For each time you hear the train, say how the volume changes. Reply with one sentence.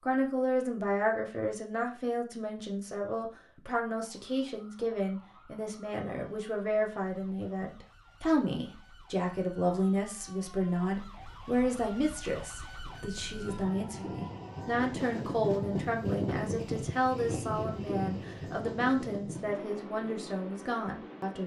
The train can be heard from 12.8 to 21.4 s, getting louder then quieter.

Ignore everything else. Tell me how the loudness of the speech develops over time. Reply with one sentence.
The loudness of the speech stays about the same.